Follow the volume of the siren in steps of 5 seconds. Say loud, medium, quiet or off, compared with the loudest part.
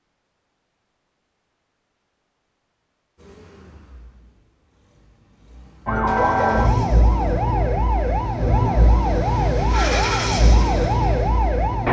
off, loud, loud.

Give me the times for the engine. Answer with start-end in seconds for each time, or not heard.
3.1-11.8.